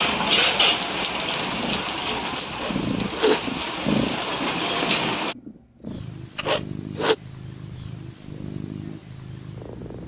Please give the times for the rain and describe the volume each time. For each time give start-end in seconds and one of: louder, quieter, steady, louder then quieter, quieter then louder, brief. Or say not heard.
0.0-5.3 quieter then louder.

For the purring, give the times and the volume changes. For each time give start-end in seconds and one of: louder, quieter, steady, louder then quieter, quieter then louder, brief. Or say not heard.
0.0-10.0 louder then quieter.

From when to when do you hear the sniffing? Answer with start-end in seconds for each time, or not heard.
2.5-3.4, 6.3-7.2.